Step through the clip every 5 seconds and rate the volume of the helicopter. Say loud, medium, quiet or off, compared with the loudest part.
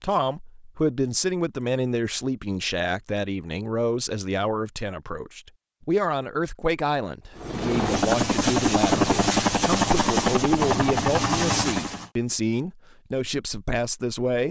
off, loud, loud.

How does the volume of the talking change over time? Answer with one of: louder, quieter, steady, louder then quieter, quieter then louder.
steady.